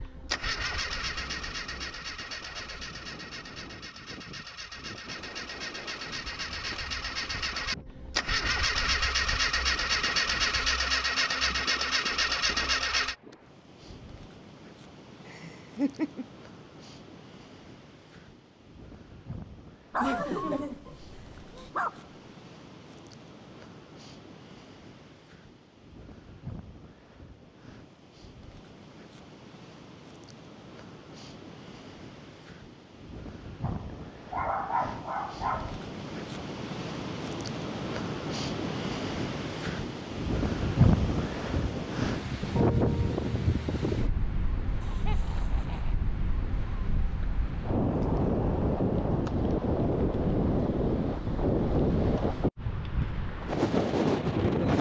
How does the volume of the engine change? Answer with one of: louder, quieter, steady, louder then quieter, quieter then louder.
quieter then louder.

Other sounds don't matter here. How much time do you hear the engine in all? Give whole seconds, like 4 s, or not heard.
13 s.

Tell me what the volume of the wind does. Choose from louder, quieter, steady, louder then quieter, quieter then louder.
louder.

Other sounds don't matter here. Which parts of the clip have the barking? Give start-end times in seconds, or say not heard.
19.9-22.1, 33.6-35.9.